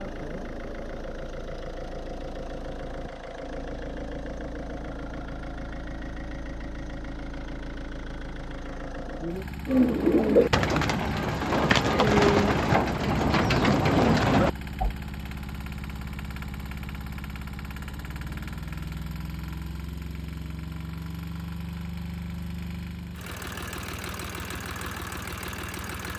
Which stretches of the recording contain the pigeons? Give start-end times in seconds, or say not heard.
9.7-14.9.